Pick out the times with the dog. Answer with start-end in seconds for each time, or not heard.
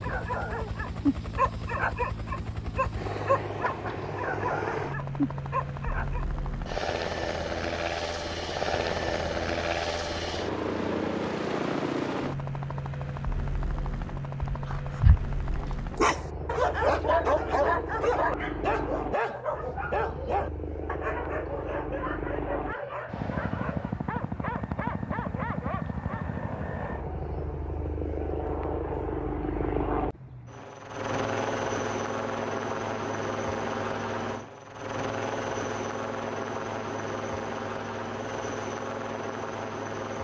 0.0-6.2, 14.4-26.2.